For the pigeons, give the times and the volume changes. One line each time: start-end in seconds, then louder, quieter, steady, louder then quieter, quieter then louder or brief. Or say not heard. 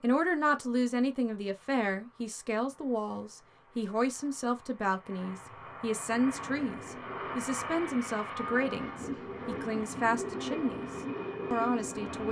6.0-12.2 louder.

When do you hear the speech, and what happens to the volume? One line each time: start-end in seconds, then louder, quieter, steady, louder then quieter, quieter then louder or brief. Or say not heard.
0.0-12.2 steady.